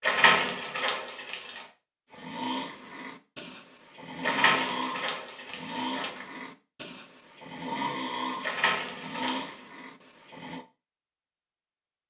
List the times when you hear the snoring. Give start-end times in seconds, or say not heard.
2.1-10.7.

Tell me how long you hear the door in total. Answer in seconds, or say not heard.
5 s.